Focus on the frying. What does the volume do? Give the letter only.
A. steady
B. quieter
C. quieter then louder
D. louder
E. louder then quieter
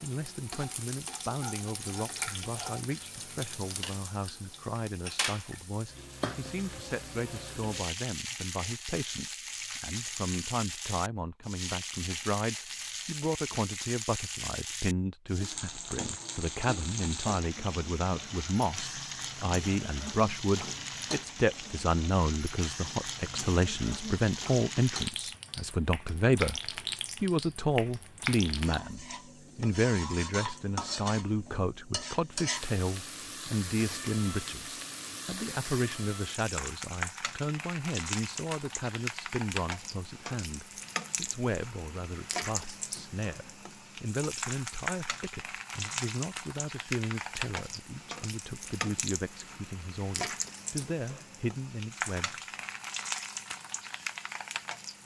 A.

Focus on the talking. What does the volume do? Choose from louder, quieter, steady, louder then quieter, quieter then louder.
louder then quieter.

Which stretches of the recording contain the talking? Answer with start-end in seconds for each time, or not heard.
0.0-52.3.